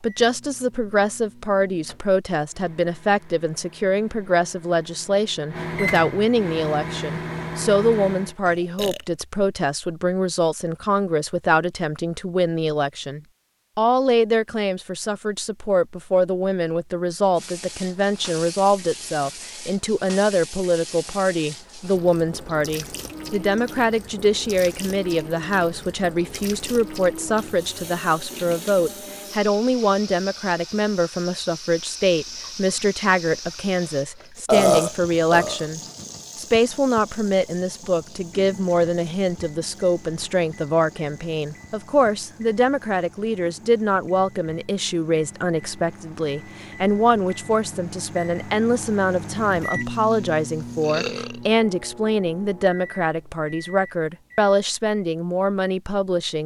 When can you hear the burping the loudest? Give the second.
35 s.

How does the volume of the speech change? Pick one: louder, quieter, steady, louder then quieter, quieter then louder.
steady.